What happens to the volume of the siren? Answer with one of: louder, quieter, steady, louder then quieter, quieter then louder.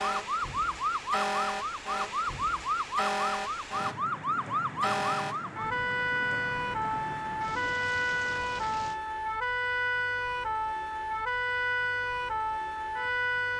steady.